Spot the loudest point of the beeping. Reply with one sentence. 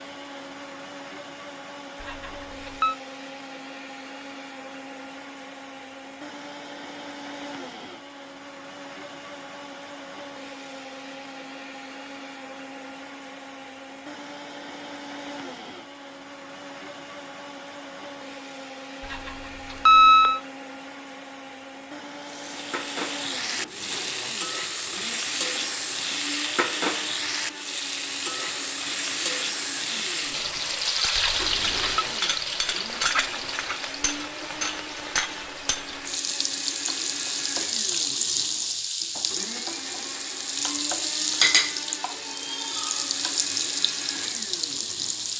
The loudest moment of the beeping is at 20 seconds.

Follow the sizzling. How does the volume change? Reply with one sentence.
The volume of the sizzling stays about the same.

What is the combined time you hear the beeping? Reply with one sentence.
You can hear the beeping for 3 seconds altogether.